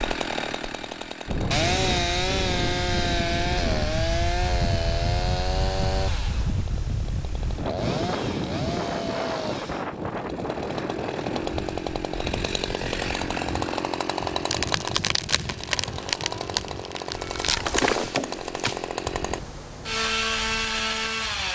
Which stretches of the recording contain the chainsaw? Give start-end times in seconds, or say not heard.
0.0-21.5.